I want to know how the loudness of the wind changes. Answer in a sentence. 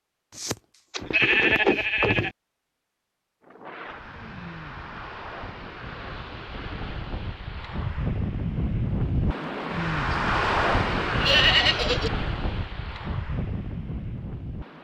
The volume of the wind goes up, then down.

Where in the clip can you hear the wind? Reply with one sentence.
You can hear the wind from 3.4 to 14.8 s.